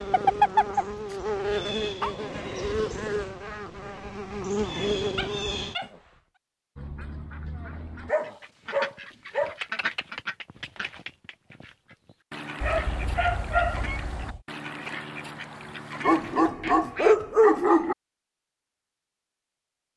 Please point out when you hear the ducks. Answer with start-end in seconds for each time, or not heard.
6.8-17.2.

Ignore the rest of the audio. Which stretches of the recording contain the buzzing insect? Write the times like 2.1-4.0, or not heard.
0.0-5.8.